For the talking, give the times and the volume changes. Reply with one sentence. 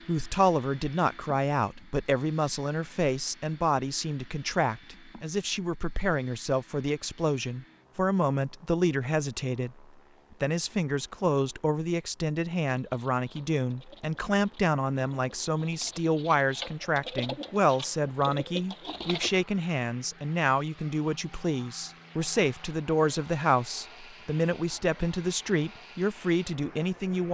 The talking can be heard from 0.1 to 27.3 s, at a steady volume.